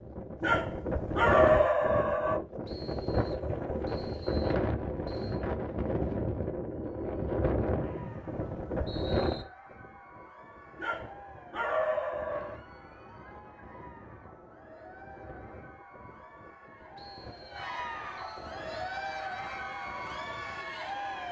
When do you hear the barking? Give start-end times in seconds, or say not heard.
0.4-2.4, 10.8-12.6.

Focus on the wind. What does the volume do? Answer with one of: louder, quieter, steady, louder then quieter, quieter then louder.
quieter.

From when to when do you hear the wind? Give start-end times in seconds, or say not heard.
0.0-21.2.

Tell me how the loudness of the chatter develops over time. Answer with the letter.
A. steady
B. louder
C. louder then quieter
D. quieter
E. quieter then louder
B.